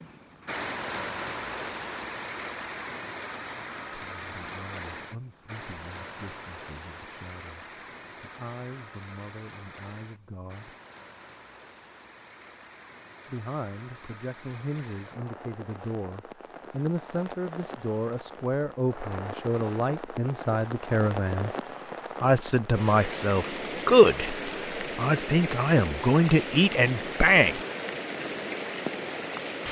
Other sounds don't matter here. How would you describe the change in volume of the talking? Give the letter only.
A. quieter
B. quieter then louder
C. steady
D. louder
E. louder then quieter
D.